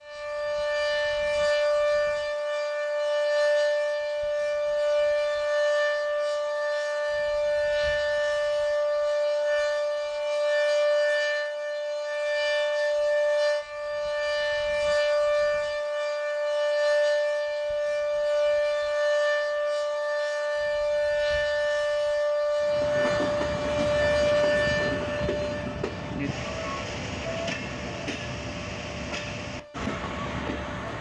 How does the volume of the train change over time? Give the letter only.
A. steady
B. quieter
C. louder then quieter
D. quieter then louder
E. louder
A.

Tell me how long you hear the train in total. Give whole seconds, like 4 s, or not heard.
8 s.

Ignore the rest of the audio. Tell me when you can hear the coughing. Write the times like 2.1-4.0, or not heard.
not heard.